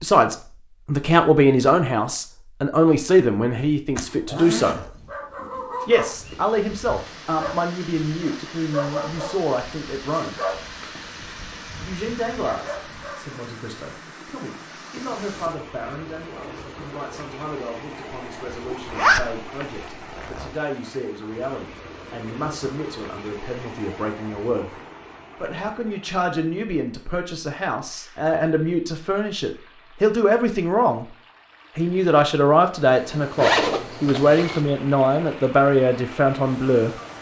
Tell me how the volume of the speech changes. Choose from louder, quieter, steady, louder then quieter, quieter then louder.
quieter then louder.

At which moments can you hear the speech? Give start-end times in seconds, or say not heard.
0.0-4.8, 5.8-10.3, 11.8-24.8, 25.4-31.1, 31.8-36.9.